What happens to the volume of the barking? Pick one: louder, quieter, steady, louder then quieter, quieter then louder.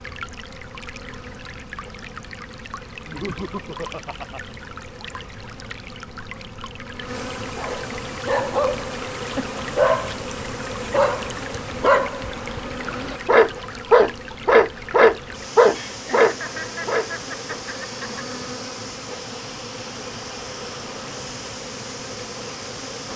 louder.